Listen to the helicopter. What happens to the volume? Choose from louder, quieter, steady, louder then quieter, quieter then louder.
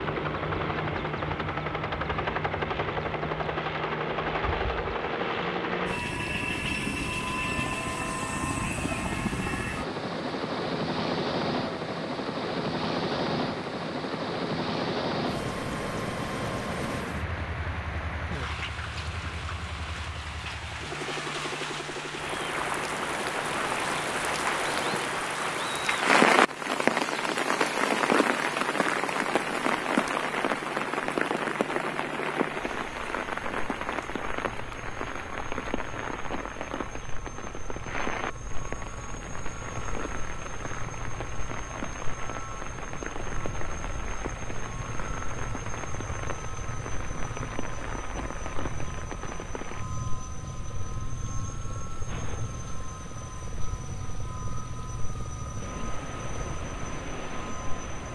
quieter.